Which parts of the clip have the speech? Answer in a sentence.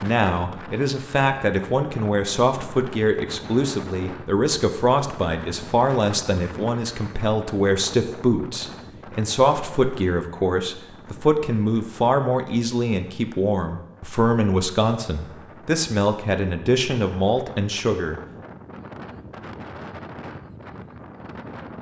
You can hear the speech from 0.0 to 18.1 s.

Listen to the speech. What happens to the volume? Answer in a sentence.
The loudness of the speech stays about the same.